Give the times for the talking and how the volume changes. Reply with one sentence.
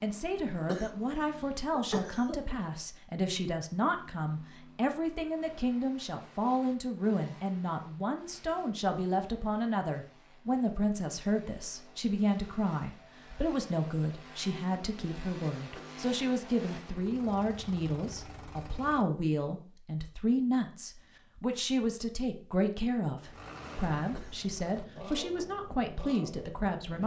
The talking can be heard from 0.0 to 27.0 s, at a steady volume.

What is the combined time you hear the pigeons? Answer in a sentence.
You can't hear the pigeons here.